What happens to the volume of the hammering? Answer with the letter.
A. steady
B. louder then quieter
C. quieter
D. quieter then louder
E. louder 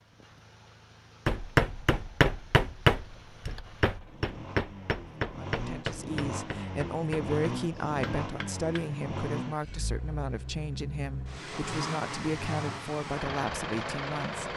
C.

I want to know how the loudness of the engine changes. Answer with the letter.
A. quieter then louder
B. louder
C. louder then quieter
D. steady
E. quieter
B.